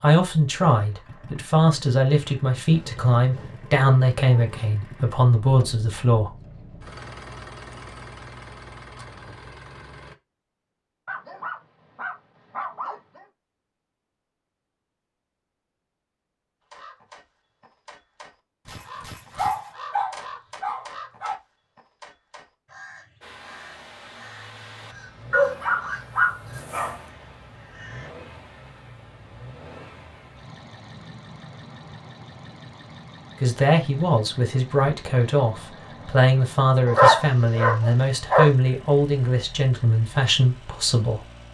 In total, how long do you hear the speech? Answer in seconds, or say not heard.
14 s.